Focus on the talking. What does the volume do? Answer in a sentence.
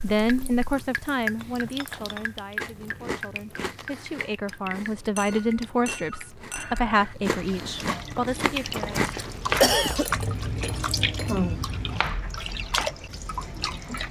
The loudness of the talking goes down, then up.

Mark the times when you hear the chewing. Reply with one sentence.
You can hear the chewing from 2.5 to 12.0 s.